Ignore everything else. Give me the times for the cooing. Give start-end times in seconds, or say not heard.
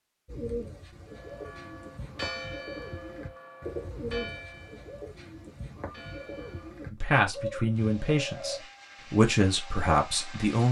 0.2-8.6.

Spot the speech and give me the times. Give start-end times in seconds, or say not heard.
6.9-10.6.